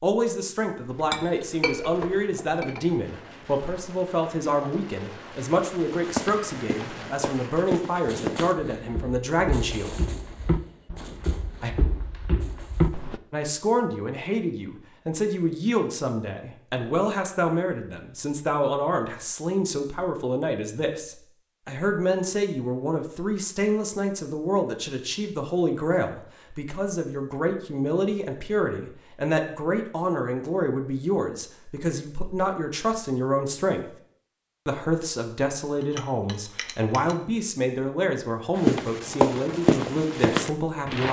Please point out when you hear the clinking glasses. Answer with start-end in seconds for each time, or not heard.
0.9-3.0, 35.8-37.1.